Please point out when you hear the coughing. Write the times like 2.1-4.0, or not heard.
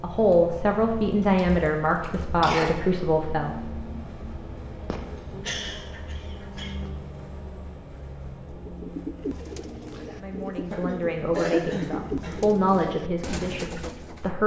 1.2-2.9, 4.9-6.9, 10.7-12.4.